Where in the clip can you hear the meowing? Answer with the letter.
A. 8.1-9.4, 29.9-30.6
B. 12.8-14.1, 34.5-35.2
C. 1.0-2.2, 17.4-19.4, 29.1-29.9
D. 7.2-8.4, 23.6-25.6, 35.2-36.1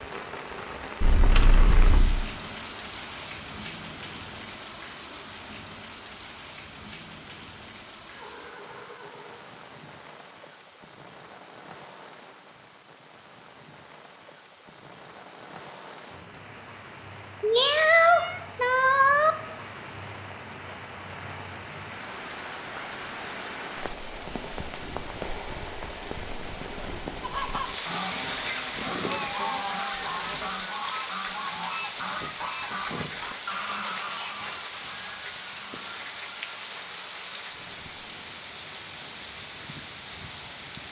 C.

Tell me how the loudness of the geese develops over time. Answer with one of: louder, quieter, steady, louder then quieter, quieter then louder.
quieter.